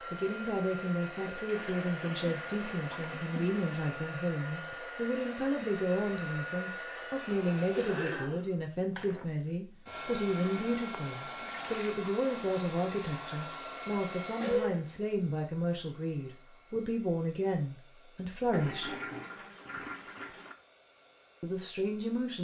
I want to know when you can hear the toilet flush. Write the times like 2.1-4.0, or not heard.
1.4-3.5, 10.3-11.9, 18.5-20.6.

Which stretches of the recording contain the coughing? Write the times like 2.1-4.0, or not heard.
7.7-8.4, 14.4-14.8.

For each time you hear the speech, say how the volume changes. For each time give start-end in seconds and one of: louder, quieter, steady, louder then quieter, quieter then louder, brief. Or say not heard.
0.1-18.9 steady
21.4-22.3 brief.